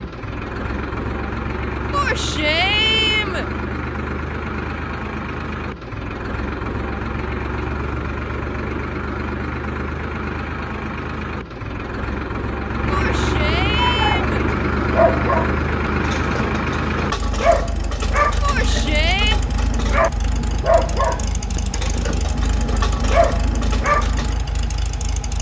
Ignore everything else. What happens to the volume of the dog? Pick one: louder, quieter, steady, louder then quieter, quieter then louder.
steady.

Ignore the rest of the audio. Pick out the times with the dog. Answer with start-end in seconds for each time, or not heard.
13.8-24.4.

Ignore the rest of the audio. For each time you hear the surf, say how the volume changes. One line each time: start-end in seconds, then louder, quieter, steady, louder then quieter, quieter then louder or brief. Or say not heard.
not heard.